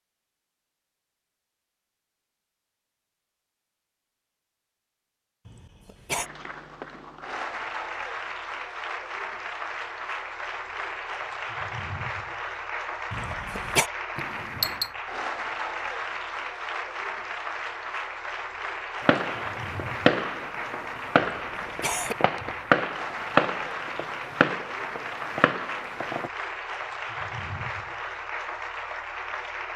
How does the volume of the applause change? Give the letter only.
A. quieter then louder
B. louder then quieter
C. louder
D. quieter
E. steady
E.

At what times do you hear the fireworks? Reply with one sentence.
You can hear the fireworks from 19.1 to 26.3 s.